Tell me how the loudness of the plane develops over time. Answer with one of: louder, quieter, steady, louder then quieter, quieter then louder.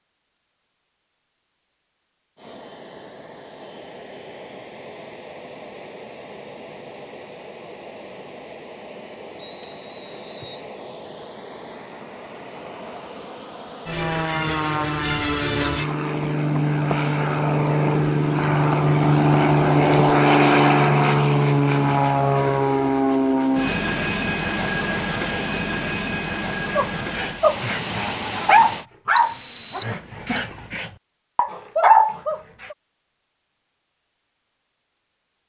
louder then quieter.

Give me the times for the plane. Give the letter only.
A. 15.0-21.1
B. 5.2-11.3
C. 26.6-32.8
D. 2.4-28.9
D.